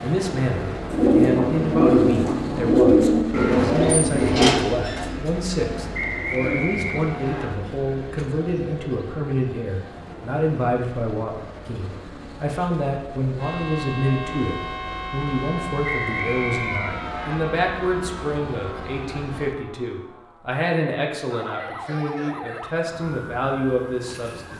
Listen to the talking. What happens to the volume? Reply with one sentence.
The volume of the talking stays about the same.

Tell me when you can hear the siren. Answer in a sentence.
You can hear the siren from 13.3 to 24.5 s.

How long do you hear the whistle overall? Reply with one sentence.
The whistle can be heard for 3 seconds in total.